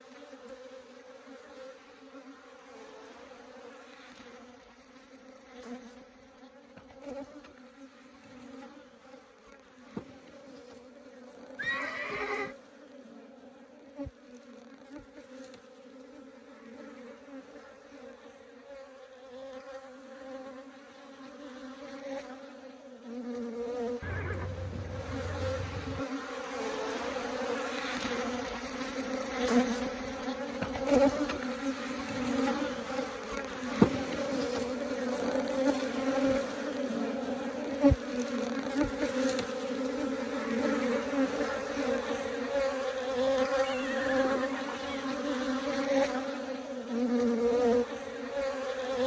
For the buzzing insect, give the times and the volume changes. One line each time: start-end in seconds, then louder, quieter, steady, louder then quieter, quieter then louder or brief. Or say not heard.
0.0-49.0 louder.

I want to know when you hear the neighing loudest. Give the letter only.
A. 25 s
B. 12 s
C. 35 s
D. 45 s
B.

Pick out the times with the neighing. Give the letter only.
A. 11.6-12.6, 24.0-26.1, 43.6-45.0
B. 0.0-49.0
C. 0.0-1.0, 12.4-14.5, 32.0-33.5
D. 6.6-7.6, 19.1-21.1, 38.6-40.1
A.